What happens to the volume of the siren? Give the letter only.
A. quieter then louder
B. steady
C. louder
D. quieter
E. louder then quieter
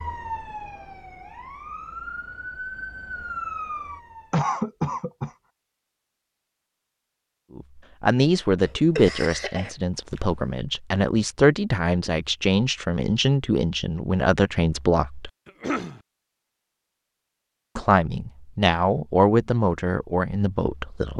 C.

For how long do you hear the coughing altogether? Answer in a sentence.
The coughing can be heard for 3 seconds in total.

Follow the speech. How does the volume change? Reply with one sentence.
The volume of the speech stays about the same.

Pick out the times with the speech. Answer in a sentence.
The speech can be heard from 7.5 to 15.3 s and from 17.8 to 21.1 s.